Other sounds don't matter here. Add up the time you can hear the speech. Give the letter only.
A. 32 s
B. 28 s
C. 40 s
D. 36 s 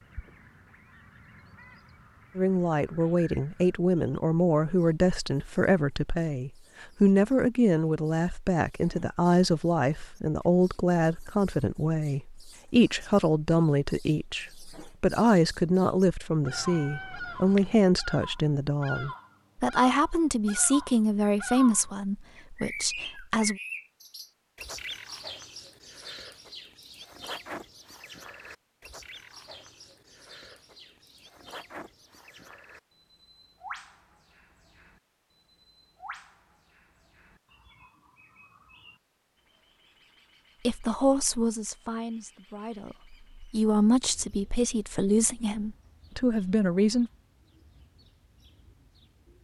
B.